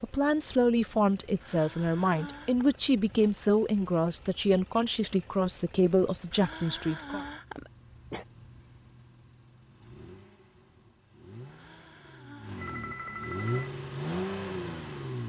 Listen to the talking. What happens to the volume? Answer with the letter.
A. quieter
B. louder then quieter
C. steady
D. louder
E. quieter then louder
C.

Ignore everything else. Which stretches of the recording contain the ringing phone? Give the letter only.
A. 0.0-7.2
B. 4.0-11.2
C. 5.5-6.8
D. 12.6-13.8
D.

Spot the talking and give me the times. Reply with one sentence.
The talking can be heard from 0.0 to 7.2 s.